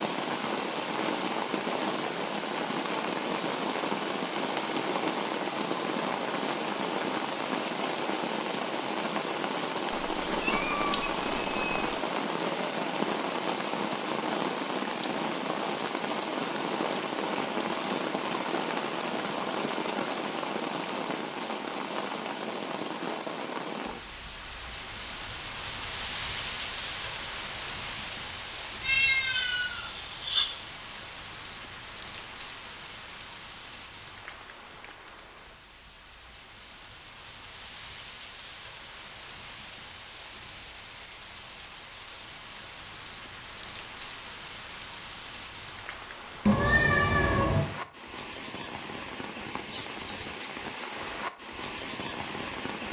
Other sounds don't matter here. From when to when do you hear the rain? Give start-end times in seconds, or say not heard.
0.0-52.8.